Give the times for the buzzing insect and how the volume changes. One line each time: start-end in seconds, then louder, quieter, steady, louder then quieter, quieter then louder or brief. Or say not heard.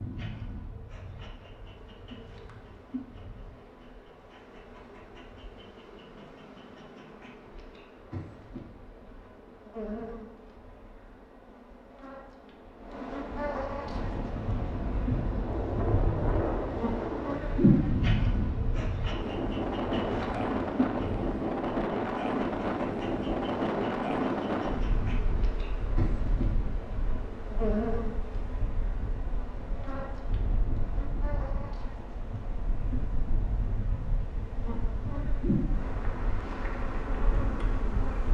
0.0-38.2 louder then quieter.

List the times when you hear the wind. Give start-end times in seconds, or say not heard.
13.8-38.2.